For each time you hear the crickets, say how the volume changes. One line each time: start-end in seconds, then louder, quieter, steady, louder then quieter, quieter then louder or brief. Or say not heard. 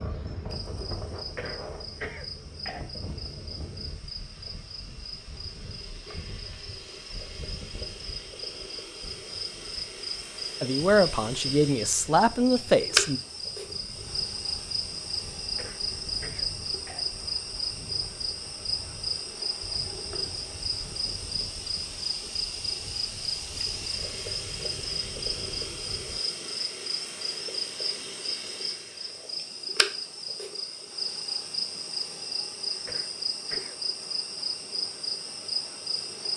0.0-36.3 louder.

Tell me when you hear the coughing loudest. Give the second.
2 s.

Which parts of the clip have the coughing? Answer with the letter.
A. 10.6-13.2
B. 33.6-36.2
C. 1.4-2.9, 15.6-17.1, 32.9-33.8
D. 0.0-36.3
C.